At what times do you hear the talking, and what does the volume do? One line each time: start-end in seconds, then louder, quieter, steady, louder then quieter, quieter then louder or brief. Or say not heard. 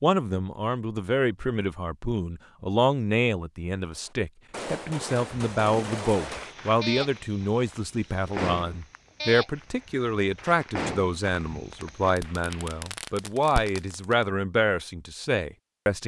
0.0-16.0 steady.